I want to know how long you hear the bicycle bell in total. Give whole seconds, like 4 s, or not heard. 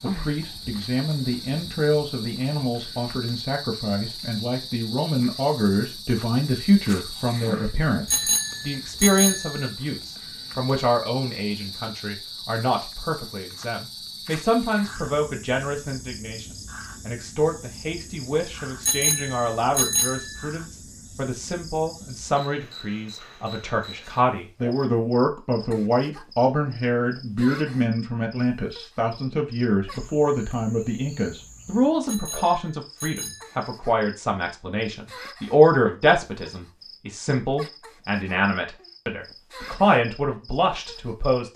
5 s.